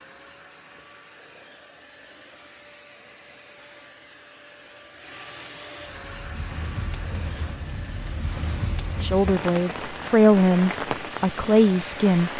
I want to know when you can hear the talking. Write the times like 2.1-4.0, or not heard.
9.0-12.3.